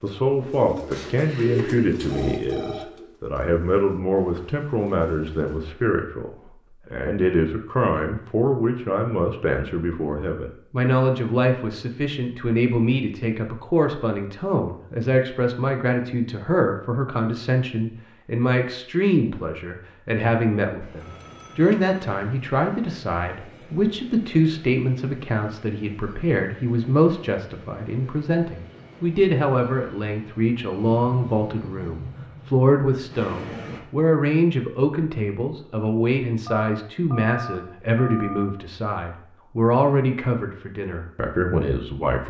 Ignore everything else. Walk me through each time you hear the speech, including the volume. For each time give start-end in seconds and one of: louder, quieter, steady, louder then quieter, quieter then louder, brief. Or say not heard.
0.0-42.2 steady.